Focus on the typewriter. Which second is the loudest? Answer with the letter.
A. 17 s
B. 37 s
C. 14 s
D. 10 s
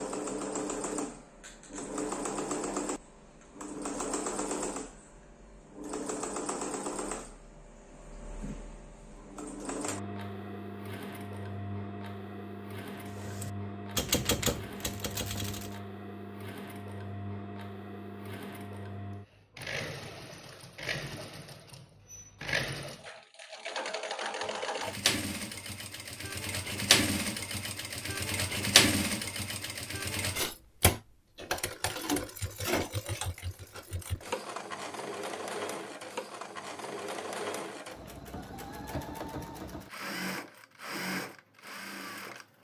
C.